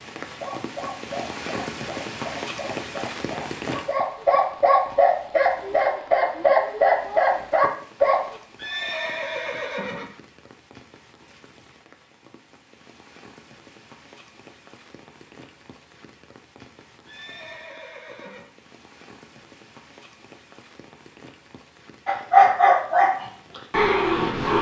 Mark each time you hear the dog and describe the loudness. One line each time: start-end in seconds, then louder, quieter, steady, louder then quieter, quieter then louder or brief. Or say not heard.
0.2-8.3 louder
22.1-24.5 brief.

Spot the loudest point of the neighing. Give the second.
9 s.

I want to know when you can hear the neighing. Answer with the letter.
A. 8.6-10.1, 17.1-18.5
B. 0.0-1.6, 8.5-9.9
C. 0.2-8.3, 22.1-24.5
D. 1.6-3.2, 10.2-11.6
A.